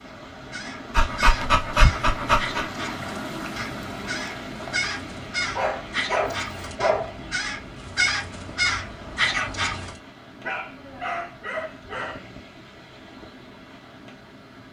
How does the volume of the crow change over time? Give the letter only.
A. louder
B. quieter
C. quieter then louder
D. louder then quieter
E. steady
A.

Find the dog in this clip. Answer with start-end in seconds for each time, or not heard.
0.9-2.6, 5.5-7.2, 10.4-12.2.